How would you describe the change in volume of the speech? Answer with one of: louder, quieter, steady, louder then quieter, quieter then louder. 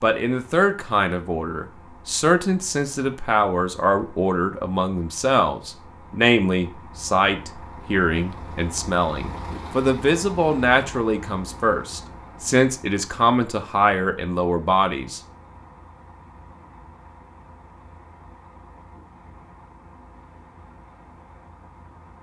steady.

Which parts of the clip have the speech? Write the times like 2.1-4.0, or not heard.
0.0-15.2.